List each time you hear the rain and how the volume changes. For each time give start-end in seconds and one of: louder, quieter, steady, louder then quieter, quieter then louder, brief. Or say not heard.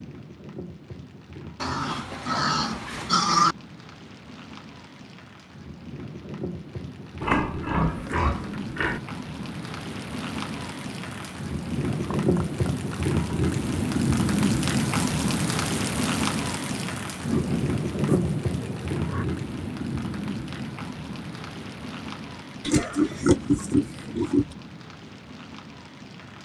0.0-26.4 louder then quieter.